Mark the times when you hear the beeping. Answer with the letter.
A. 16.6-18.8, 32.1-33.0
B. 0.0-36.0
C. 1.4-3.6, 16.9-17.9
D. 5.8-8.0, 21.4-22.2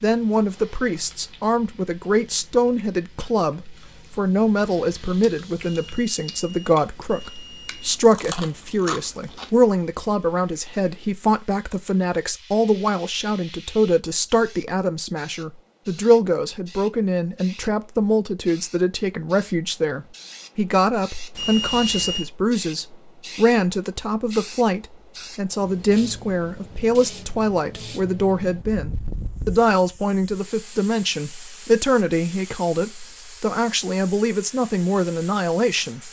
D.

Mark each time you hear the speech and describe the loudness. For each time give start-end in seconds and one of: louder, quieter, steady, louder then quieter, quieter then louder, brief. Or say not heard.
0.0-36.0 steady.